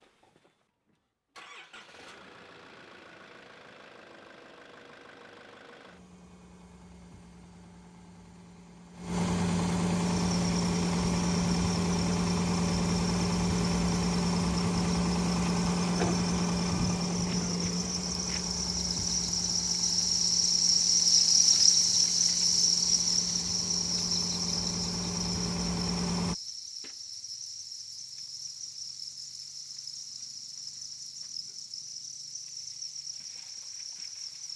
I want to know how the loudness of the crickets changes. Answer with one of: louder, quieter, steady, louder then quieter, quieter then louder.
louder then quieter.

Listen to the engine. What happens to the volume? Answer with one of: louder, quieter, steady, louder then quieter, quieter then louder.
louder then quieter.